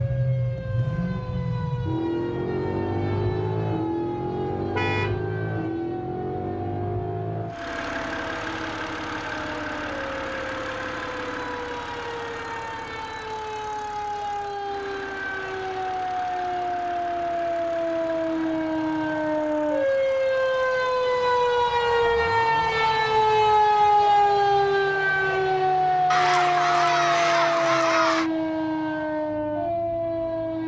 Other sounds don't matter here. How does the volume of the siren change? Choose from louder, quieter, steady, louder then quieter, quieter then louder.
louder.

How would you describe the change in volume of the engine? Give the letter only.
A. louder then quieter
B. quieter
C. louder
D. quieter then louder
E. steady
B.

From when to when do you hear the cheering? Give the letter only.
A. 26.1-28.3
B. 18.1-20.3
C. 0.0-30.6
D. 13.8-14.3
A.